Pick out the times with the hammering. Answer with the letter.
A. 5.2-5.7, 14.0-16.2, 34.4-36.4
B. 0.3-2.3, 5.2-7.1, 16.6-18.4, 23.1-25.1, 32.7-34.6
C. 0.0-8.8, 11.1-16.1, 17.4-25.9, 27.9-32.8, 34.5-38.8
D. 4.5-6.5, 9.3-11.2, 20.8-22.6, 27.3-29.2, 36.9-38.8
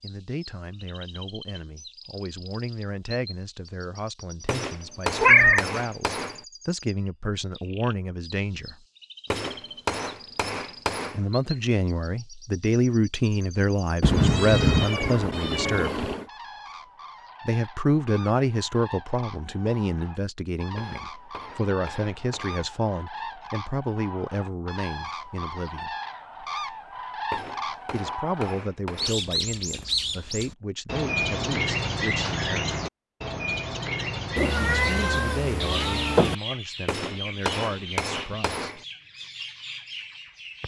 D.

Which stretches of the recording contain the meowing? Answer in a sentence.
The meowing can be heard from 5.2 to 5.7 s, from 14.0 to 16.2 s and from 34.4 to 36.4 s.